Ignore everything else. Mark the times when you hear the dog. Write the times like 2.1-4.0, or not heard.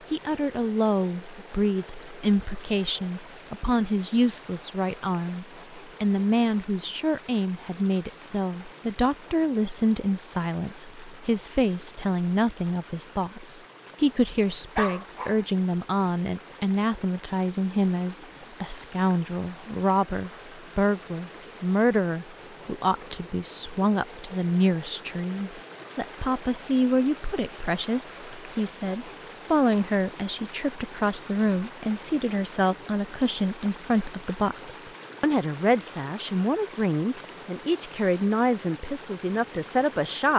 14.8-15.4.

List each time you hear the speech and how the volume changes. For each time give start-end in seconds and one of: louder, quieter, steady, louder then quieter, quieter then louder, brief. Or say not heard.
0.1-40.3 steady.